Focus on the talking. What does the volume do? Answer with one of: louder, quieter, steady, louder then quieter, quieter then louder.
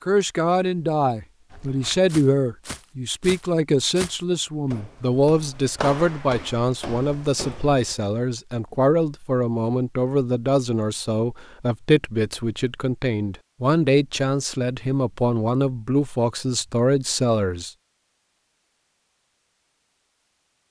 steady.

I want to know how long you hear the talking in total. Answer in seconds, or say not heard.
18 s.